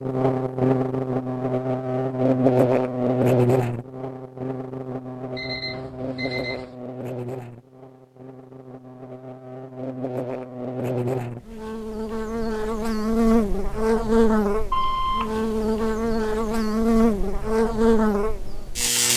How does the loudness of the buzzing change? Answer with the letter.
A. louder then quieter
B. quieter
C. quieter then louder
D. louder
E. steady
C.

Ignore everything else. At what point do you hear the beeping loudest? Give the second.
15 s.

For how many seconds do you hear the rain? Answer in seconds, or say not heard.
not heard.